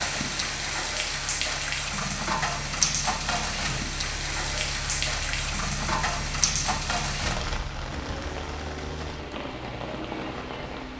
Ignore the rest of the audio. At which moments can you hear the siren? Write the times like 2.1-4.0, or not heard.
not heard.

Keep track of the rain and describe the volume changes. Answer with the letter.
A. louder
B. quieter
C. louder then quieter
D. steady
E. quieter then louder
B.